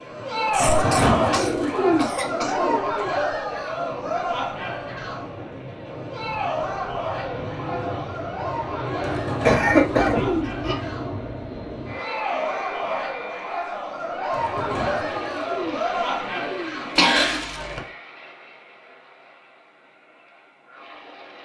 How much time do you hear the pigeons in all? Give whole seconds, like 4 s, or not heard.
7 s.